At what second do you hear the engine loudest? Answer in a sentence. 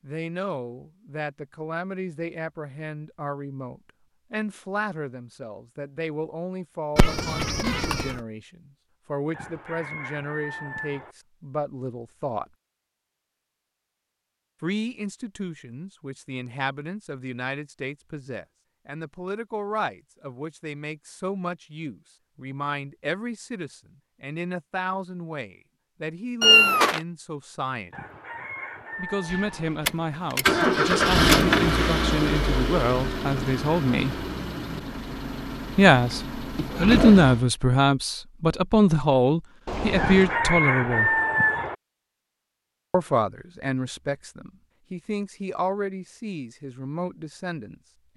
The volume of the engine peaks at 31 seconds.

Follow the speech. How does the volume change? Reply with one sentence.
The loudness of the speech goes up.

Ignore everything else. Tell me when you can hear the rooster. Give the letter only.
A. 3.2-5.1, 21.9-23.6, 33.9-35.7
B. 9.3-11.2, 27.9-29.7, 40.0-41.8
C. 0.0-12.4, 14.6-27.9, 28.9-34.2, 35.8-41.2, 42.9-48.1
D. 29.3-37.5
B.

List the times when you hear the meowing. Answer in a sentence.
You can hear the meowing from 7.0 to 8.2 s, from 26.4 to 27.0 s and from 39.6 to 40.4 s.